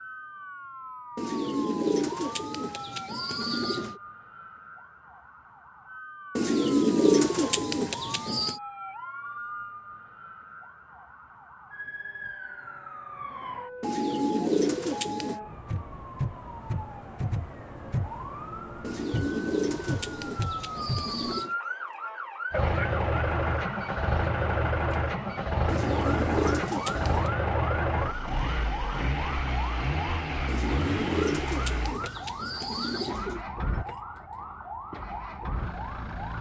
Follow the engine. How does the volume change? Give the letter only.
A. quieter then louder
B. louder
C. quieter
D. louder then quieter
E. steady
C.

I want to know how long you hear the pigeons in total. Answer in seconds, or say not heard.
14 s.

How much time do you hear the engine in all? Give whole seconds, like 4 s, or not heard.
14 s.